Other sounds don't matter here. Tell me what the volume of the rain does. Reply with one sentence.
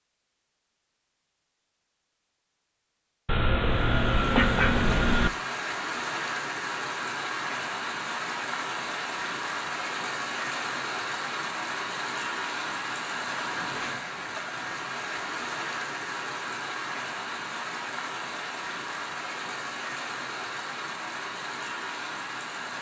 The loudness of the rain stays about the same.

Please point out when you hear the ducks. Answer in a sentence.
The ducks can be heard from 3.2 to 5.3 s.